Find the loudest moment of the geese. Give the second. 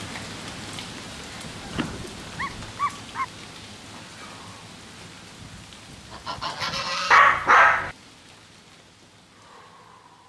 7 s.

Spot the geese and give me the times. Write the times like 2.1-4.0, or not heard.
1.4-2.6, 5.4-7.2.